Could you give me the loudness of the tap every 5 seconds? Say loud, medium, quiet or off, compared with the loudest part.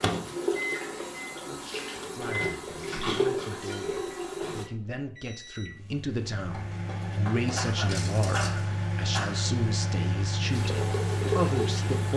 loud, off, loud.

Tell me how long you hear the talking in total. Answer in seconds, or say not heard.
10 s.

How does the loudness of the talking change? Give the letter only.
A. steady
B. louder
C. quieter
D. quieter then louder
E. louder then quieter
B.